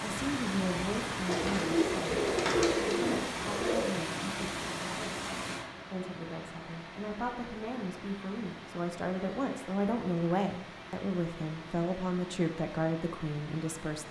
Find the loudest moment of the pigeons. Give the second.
3 s.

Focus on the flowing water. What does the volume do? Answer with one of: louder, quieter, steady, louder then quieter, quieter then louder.
quieter.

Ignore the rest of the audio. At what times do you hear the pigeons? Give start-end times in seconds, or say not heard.
1.2-4.0.